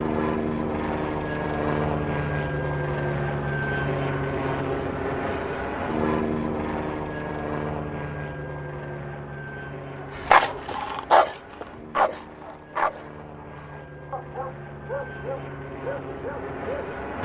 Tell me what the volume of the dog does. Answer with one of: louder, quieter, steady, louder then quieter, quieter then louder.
quieter.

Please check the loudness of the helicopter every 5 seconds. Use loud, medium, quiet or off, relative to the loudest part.
loud, loud, quiet, medium.